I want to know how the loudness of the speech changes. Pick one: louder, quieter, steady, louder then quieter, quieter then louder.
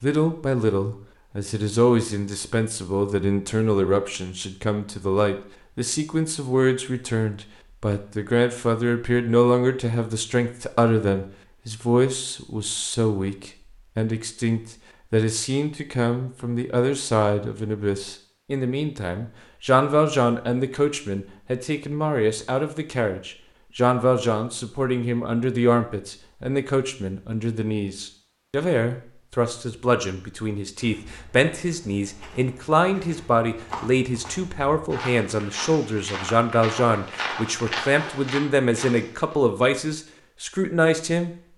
steady.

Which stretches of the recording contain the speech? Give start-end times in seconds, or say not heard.
0.0-41.3.